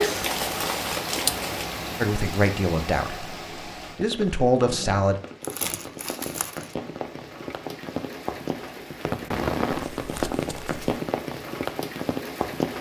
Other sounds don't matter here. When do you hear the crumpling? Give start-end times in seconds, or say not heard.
0.0-1.6, 5.4-6.8, 9.7-10.8.